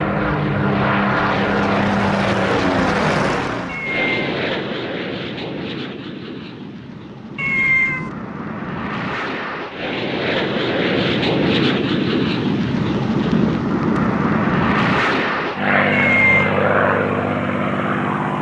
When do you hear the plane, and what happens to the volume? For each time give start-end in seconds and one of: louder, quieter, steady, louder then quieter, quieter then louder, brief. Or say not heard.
0.0-18.3 quieter then louder.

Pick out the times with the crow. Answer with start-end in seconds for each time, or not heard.
not heard.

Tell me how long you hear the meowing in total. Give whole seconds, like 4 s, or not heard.
2 s.